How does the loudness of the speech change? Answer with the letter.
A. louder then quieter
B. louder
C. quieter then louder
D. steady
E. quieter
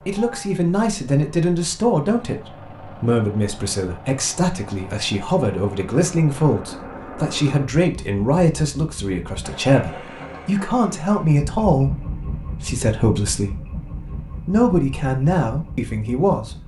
D.